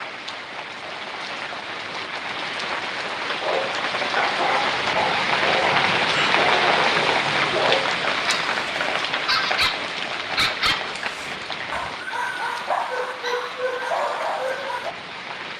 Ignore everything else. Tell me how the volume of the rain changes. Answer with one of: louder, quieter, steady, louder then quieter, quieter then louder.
louder then quieter.